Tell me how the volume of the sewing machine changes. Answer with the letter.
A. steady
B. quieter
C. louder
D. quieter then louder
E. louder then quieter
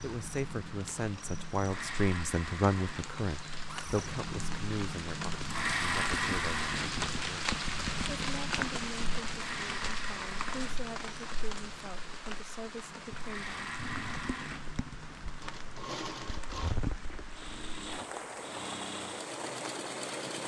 E.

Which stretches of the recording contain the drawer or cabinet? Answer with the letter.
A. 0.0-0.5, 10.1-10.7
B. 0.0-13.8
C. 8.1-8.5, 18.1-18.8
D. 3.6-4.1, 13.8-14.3
D.